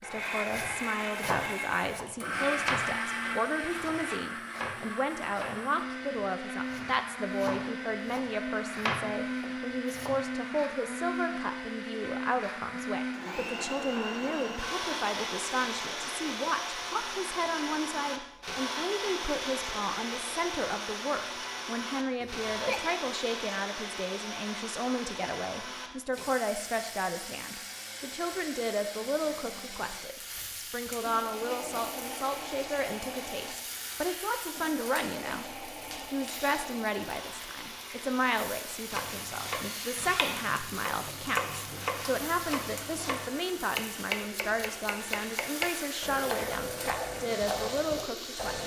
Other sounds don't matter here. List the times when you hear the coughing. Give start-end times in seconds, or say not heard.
22.2-22.8.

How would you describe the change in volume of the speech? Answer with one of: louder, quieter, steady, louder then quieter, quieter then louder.
steady.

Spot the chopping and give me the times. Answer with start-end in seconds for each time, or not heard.
0.1-10.2, 38.9-48.6.